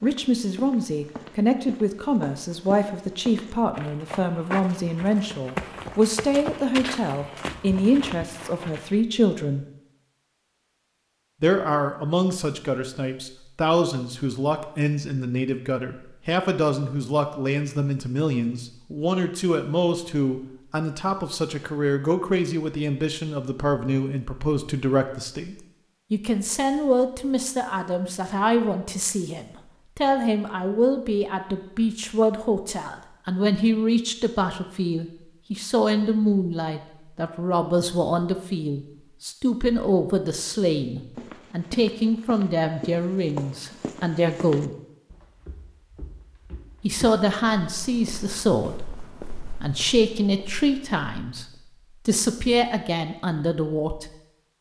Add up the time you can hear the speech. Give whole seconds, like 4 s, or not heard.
50 s.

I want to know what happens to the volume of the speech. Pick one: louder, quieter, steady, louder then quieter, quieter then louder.
steady.